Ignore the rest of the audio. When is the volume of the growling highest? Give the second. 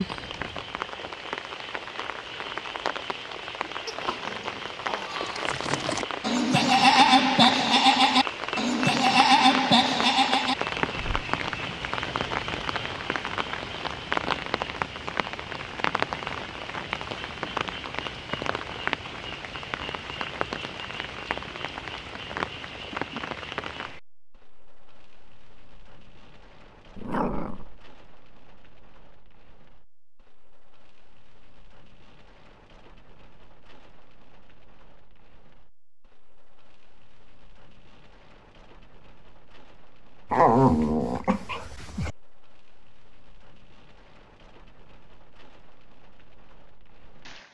41 s.